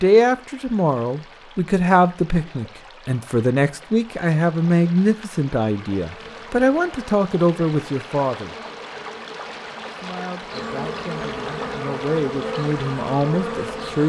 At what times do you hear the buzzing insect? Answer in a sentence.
The buzzing insect can be heard from 6.0 to 14.0 s.